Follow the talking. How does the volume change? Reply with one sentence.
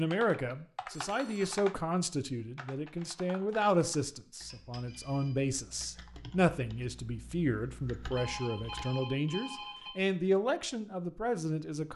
The volume of the talking stays about the same.